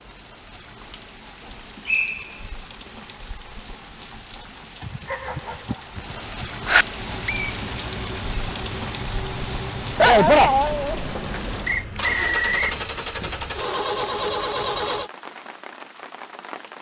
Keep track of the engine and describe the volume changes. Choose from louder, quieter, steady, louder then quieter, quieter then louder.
louder.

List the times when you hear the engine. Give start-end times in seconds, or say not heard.
7.0-15.1.